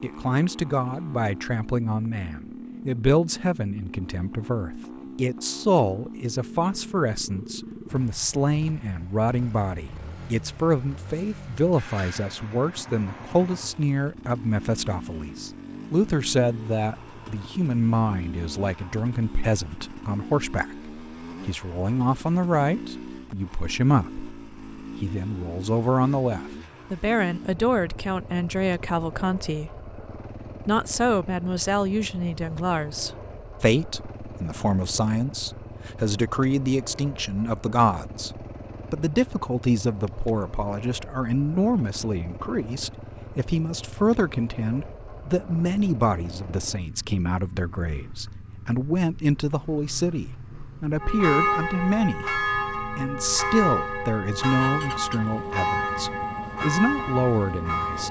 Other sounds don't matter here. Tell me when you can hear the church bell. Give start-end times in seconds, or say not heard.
51.0-58.0.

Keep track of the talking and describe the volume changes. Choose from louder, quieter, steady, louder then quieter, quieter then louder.
steady.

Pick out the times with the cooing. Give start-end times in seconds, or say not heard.
not heard.